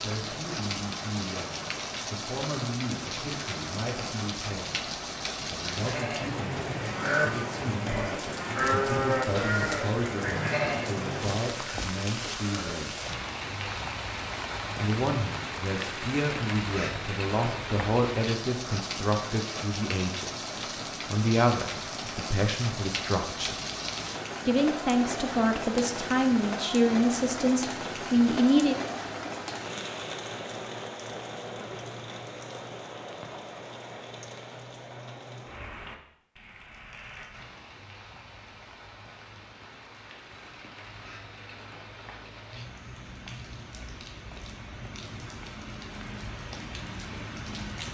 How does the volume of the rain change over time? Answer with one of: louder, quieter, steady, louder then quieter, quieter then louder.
quieter.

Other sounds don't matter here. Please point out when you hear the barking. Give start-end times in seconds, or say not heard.
not heard.